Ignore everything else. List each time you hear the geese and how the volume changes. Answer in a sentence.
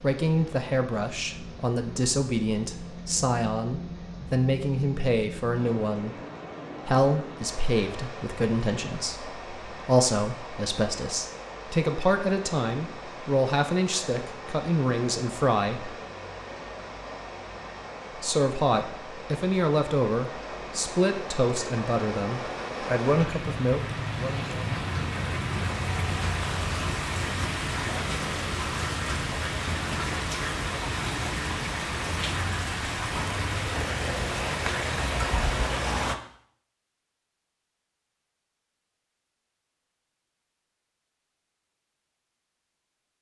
You can't hear the geese here.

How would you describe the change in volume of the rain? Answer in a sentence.
The loudness of the rain goes up.